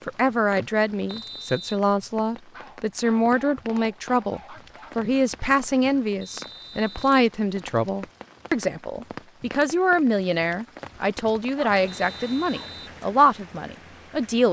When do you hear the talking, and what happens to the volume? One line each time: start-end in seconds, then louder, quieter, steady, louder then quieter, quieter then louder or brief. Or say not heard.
0.1-14.4 steady.